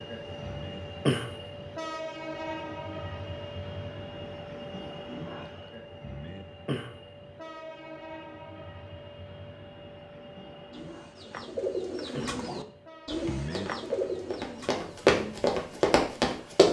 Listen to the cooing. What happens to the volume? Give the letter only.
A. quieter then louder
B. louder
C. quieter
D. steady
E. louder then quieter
C.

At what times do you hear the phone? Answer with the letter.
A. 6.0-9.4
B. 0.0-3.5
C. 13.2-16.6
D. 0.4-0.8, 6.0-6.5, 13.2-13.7
D.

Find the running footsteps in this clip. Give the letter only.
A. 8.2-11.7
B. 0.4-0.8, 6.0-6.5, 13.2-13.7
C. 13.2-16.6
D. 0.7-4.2
C.